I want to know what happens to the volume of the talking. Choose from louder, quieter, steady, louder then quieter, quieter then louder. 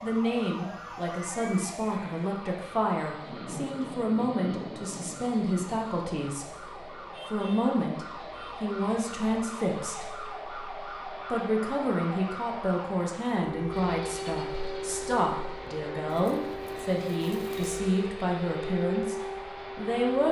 steady.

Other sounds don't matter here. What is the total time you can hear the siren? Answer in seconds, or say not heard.
20 s.